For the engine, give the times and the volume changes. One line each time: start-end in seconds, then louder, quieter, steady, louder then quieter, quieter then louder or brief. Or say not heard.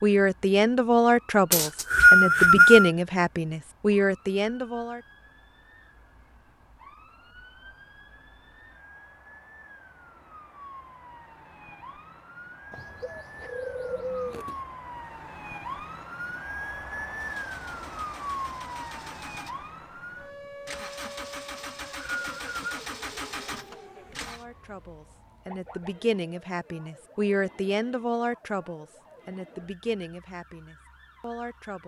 17.1-24.4 louder.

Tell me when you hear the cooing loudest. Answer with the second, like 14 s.
14 s.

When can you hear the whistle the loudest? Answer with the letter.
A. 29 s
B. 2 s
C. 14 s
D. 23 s
B.